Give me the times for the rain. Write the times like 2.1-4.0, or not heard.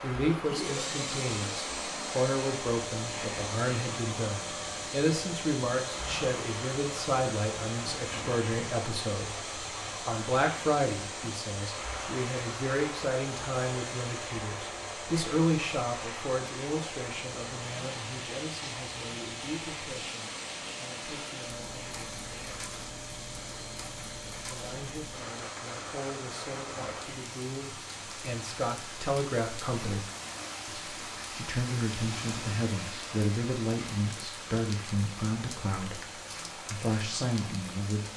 0.0-38.1.